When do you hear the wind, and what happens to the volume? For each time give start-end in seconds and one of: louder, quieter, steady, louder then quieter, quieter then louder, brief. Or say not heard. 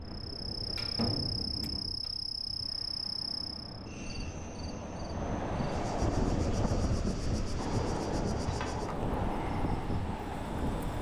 0.0-10.9 louder.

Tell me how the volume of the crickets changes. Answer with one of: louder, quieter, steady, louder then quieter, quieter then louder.
quieter.